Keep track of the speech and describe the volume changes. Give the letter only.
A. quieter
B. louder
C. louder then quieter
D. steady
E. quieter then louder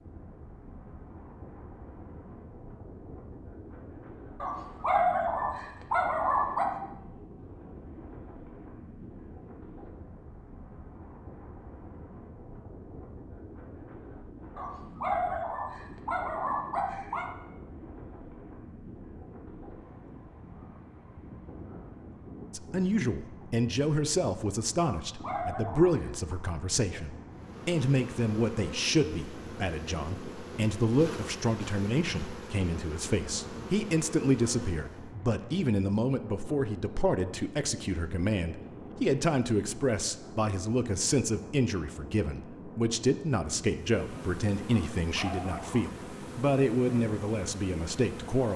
D.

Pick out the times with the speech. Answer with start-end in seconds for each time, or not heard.
22.5-48.5.